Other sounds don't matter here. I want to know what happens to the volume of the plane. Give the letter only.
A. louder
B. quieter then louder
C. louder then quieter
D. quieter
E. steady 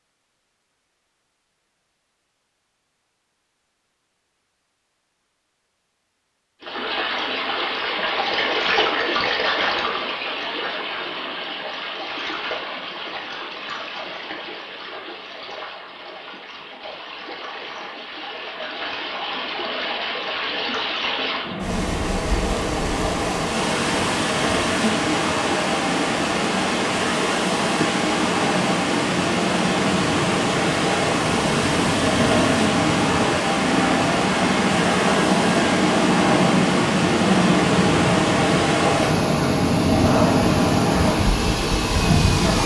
A.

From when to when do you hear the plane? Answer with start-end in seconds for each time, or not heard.
21.4-42.6.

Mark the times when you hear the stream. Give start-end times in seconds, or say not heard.
6.6-42.6.